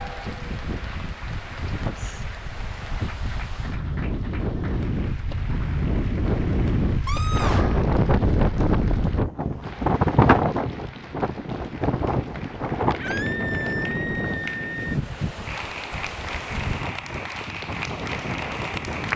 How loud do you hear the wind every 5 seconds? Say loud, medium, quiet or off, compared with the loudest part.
medium, loud, loud, medium.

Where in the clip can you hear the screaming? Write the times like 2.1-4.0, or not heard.
7.0-7.9, 12.9-14.9.